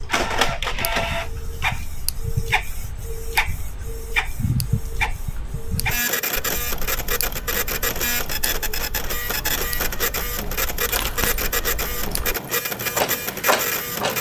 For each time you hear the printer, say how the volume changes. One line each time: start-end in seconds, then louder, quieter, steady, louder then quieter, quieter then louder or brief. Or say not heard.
0.0-14.1 steady.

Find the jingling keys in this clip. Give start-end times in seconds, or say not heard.
10.8-12.6.